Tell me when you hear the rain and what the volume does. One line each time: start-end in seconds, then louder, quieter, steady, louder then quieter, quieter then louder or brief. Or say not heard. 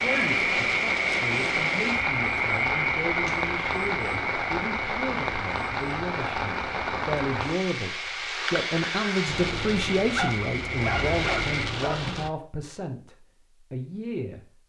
0.0-12.3 steady.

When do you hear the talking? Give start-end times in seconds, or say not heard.
0.0-14.4.